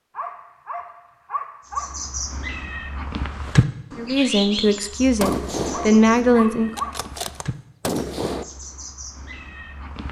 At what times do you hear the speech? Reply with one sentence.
You can hear the speech from 4.0 to 6.7 s.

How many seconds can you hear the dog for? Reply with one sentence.
The dog can be heard for 4 seconds in total.